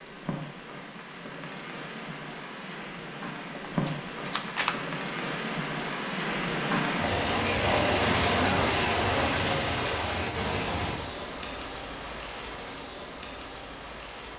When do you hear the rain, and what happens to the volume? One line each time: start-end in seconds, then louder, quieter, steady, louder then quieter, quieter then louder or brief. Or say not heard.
0.0-14.3 louder then quieter.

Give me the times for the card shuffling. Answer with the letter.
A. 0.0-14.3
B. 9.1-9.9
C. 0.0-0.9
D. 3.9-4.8
D.